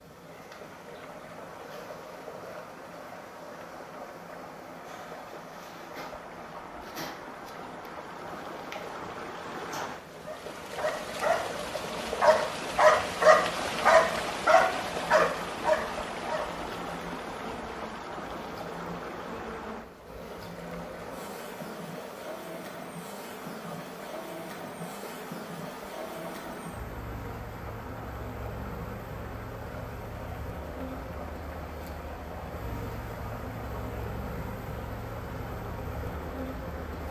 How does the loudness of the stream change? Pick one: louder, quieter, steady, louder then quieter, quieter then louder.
louder then quieter.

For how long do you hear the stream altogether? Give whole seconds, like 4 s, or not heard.
37 s.